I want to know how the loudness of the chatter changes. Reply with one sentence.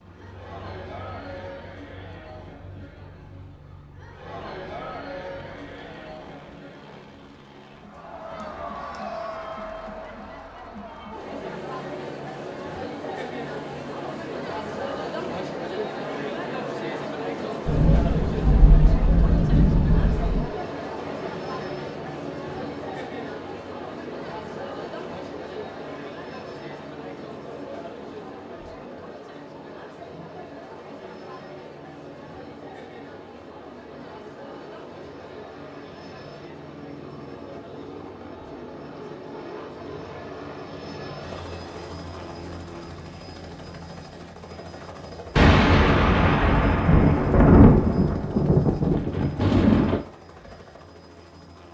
The volume of the chatter goes up, then down.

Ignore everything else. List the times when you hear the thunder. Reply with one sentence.
You can hear the thunder from 17.6 to 20.4 s and from 45.4 to 50.0 s.